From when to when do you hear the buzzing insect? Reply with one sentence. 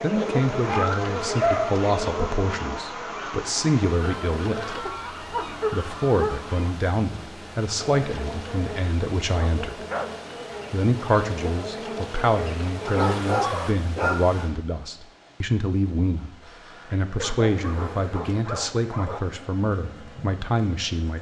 You can hear the buzzing insect from 0.0 to 4.8 s, from 7.8 to 13.8 s and from 16.4 to 21.1 s.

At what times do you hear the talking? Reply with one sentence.
You can hear the talking from 0.0 to 4.8 s, from 5.7 to 9.8 s and from 10.7 to 21.1 s.